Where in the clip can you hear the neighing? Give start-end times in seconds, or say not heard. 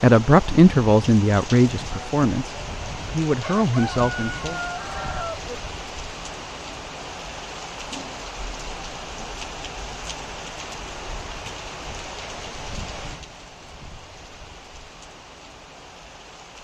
not heard.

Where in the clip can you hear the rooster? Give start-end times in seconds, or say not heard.
3.4-5.5.